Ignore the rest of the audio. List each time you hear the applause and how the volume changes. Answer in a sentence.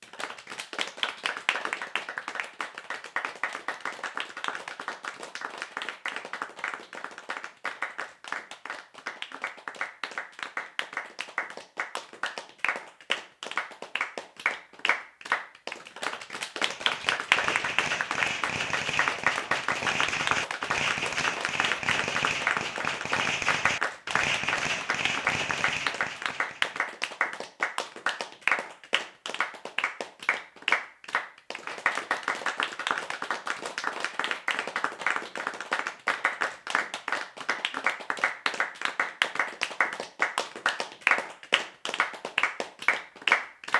The applause can be heard from 0.0 to 43.7 s, getting louder.